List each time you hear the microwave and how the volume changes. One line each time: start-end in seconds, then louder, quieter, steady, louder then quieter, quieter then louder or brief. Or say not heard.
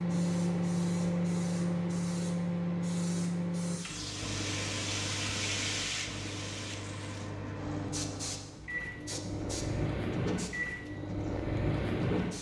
0.0-12.3 quieter then louder.